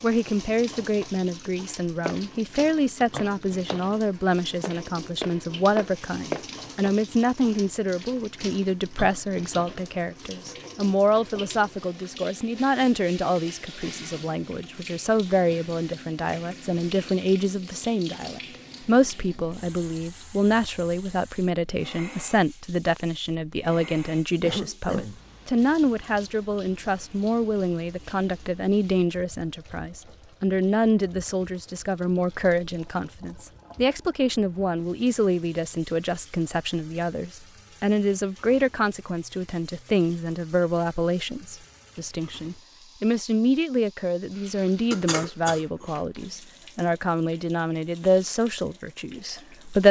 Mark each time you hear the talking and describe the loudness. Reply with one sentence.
You can hear the talking from 0.0 to 49.8 s, at a steady volume.